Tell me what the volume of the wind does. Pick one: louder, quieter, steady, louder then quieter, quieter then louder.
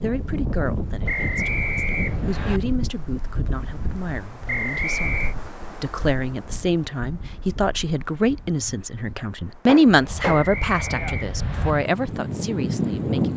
quieter then louder.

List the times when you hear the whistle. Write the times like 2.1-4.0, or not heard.
1.1-2.6, 4.5-5.3, 10.2-11.8.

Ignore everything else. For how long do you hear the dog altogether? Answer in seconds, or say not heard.
not heard.